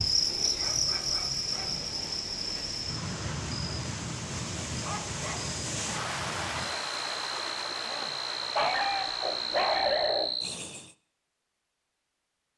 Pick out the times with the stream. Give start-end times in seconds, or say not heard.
0.0-10.4.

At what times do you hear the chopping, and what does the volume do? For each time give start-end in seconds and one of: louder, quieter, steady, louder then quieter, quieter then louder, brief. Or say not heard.
not heard.